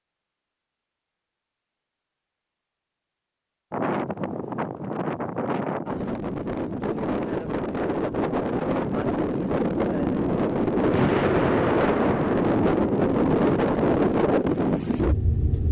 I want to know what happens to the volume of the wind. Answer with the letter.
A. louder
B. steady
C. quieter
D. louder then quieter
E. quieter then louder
A.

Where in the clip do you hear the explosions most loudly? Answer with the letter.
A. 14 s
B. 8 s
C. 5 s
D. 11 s
D.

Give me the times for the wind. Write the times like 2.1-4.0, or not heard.
3.7-15.6.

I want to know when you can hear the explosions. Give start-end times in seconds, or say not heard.
10.9-12.4.